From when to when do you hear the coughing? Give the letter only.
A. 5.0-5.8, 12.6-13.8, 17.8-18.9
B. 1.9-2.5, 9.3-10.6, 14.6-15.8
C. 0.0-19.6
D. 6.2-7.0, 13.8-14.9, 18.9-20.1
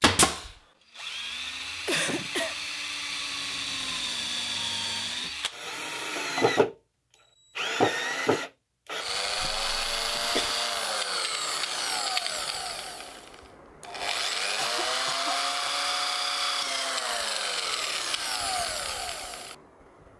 B.